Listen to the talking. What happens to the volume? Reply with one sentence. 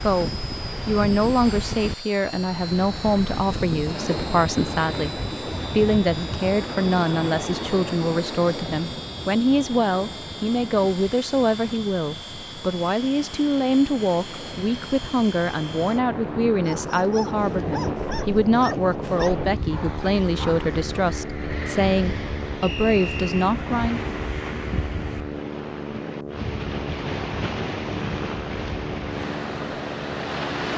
The volume of the talking stays about the same.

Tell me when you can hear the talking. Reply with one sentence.
You can hear the talking from 0.0 to 24.0 s.